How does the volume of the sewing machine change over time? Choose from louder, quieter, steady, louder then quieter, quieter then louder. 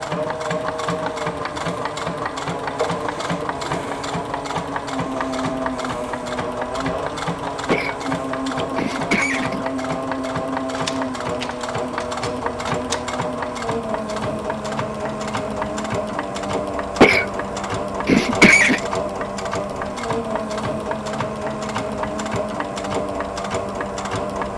steady.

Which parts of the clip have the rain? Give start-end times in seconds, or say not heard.
not heard.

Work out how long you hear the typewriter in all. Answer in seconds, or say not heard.
2 s.